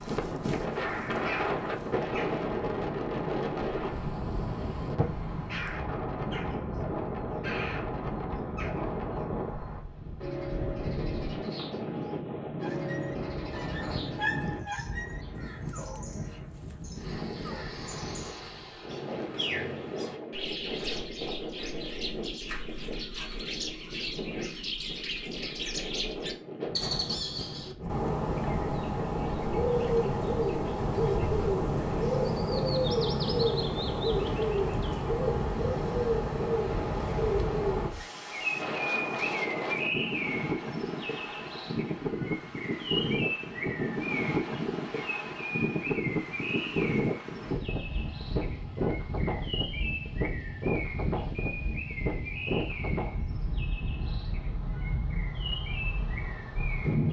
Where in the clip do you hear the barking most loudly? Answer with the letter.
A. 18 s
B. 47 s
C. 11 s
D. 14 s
D.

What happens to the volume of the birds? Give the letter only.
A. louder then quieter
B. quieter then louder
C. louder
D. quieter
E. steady
A.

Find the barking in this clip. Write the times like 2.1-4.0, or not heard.
12.6-17.6.